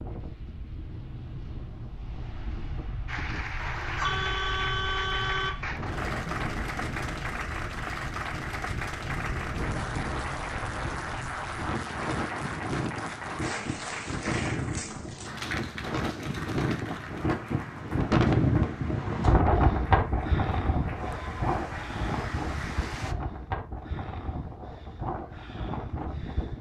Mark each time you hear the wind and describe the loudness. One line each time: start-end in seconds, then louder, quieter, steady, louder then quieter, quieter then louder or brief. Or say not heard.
0.0-26.5 louder then quieter.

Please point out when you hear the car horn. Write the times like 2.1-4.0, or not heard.
3.5-5.5.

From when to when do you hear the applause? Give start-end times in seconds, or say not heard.
3.0-23.1.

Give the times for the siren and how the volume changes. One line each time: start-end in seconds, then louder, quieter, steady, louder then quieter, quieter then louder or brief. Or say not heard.
not heard.